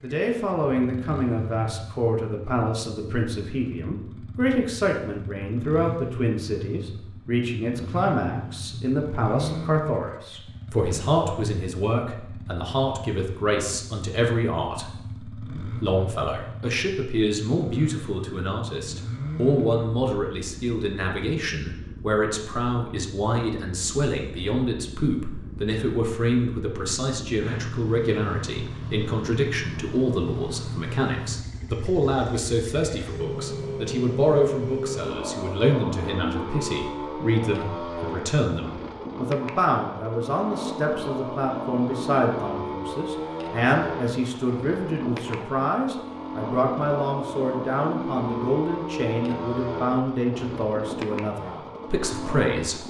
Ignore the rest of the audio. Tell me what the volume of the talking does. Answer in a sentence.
The loudness of the talking stays about the same.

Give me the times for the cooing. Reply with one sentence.
You can't hear the cooing here.